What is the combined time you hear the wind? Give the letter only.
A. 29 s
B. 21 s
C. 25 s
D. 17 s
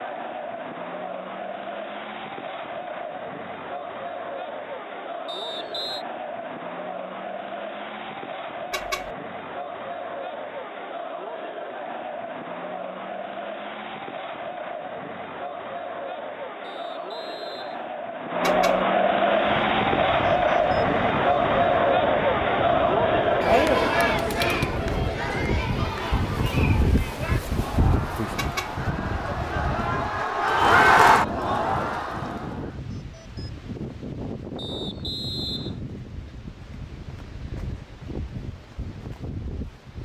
B.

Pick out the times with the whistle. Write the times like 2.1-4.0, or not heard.
5.2-6.0, 16.6-17.9, 34.5-35.8.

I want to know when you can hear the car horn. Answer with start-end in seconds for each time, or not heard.
8.7-9.2, 18.4-18.9, 28.4-28.8.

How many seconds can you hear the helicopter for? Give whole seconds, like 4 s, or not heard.
not heard.